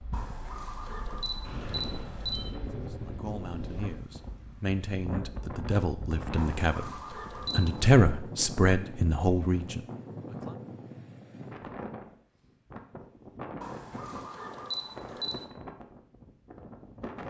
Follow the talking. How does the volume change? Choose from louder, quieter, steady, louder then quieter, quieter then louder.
louder then quieter.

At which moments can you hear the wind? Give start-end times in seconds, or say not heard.
0.0-17.2.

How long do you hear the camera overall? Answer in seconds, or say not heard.
6 s.